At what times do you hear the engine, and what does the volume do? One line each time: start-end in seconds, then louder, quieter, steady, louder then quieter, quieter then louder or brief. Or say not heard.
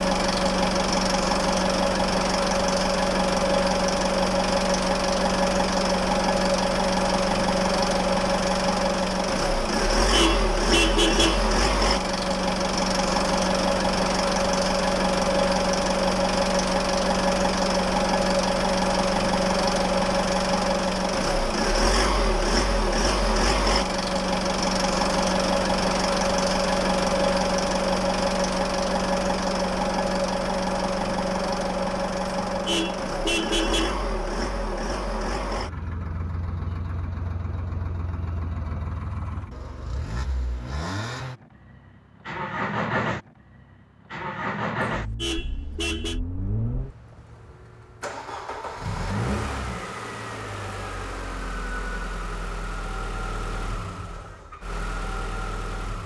0.0-56.0 quieter.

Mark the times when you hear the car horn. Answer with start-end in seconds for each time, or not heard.
9.9-11.5, 32.5-34.0, 44.9-46.2.